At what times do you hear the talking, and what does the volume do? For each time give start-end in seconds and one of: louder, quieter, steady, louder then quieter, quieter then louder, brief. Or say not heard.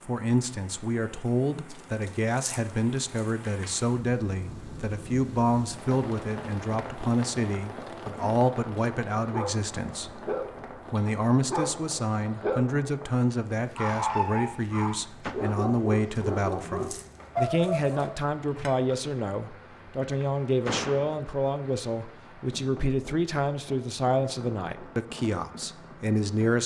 0.0-10.3 steady
10.9-26.6 steady.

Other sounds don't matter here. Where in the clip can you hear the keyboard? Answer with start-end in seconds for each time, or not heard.
not heard.